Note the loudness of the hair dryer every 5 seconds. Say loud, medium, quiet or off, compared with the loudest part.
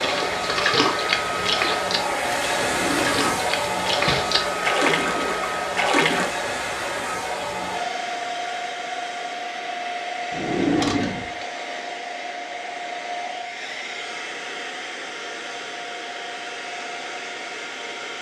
loud, loud, medium, medium.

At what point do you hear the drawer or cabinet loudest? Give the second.
11 s.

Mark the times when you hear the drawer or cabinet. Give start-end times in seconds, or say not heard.
2.5-4.3, 10.3-11.4.